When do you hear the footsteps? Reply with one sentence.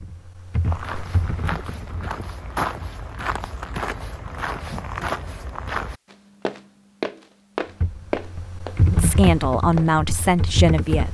You can hear the footsteps from 0.6 to 9.9 s.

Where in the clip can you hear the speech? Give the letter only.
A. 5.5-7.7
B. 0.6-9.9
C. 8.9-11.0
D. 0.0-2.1
C.